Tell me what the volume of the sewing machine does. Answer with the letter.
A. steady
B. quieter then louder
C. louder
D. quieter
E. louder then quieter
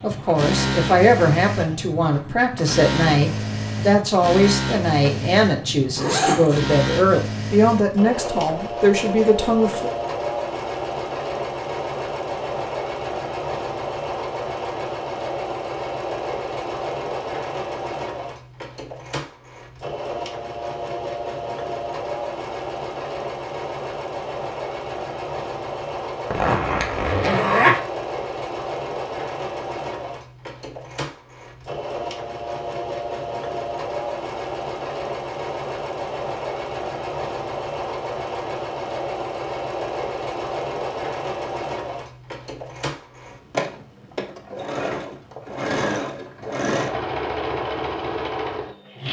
A.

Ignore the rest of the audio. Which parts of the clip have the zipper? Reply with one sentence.
The zipper can be heard from 6.0 to 6.6 s and from 26.3 to 27.8 s.